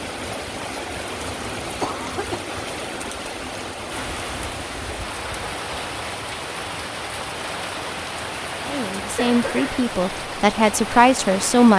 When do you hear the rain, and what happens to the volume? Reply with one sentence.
You can hear the rain from 0.0 to 11.7 s, at a steady volume.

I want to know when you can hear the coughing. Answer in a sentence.
You can hear the coughing from 1.8 to 2.5 s and from 9.0 to 9.8 s.